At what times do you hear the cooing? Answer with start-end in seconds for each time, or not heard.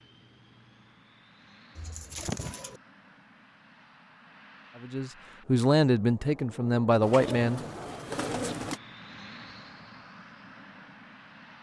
1.8-2.8, 7.0-8.8.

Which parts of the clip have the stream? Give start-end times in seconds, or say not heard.
not heard.